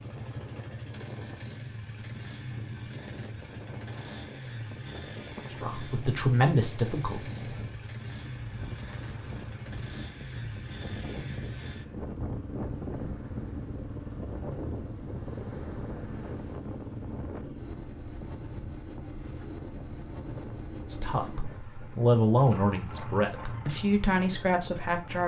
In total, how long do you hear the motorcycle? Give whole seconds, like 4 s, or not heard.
25 s.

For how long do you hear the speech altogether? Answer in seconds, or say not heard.
6 s.